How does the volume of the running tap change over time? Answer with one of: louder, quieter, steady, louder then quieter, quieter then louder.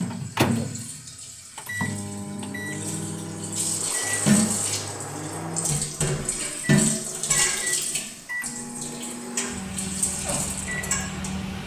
louder then quieter.